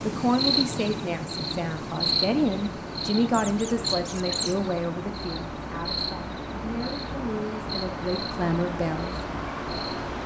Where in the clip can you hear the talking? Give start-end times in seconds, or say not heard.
0.0-9.2.